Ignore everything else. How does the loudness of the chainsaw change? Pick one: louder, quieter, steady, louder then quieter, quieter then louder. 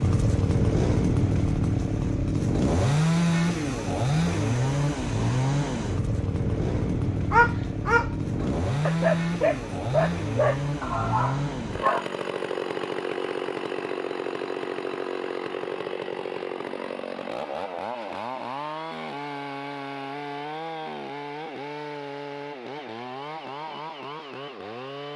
quieter.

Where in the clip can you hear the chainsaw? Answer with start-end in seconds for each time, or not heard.
0.0-25.1.